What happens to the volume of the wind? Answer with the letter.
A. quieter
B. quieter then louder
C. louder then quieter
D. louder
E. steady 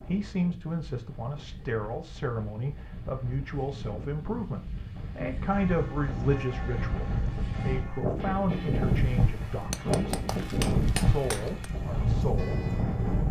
D.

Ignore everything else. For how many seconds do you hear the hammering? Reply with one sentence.
You can hear the hammering for 2 seconds altogether.